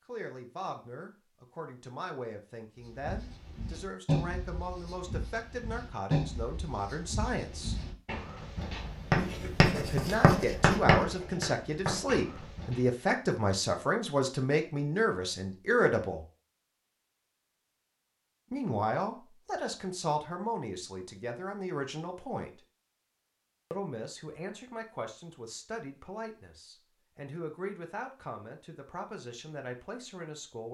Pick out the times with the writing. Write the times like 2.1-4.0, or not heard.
2.8-12.9.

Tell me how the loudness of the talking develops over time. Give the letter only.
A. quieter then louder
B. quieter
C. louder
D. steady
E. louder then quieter
E.